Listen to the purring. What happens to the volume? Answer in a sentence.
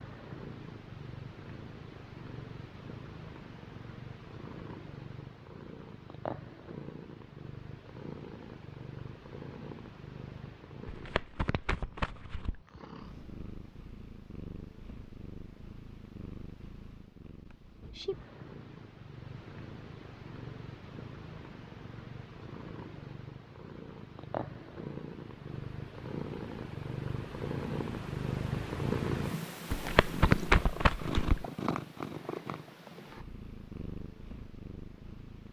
The loudness of the purring goes up.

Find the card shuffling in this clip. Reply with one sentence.
The card shuffling can be heard from 10.8 to 12.6 s and from 29.7 to 31.4 s.